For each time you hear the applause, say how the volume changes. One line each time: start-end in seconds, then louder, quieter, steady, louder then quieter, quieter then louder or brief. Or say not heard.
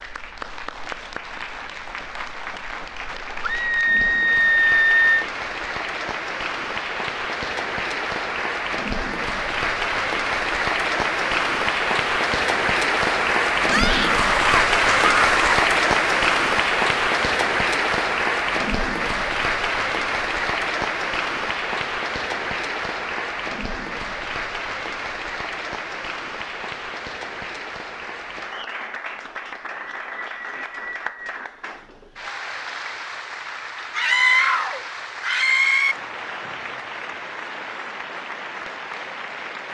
0.0-39.6 louder then quieter.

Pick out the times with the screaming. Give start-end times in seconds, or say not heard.
3.4-5.2, 13.7-15.4, 34.0-36.0.